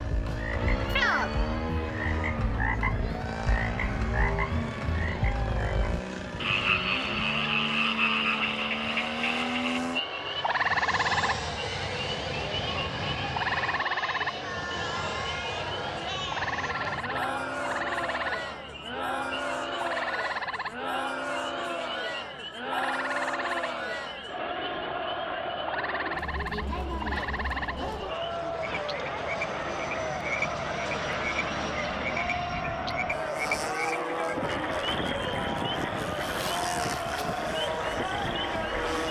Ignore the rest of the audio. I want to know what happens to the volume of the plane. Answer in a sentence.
The volume of the plane goes down, then up.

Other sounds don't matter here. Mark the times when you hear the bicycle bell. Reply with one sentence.
The bicycle bell can't be heard in this clip.